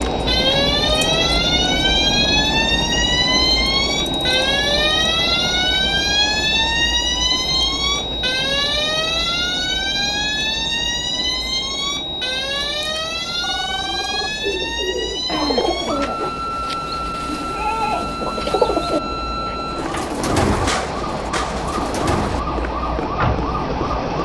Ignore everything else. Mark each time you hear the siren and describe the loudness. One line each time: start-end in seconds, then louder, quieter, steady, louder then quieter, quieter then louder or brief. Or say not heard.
0.0-24.1 quieter.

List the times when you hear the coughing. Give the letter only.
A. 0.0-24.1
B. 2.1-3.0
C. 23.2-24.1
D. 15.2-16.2
D.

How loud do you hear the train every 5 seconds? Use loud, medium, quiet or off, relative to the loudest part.
loud, medium, medium, medium, loud.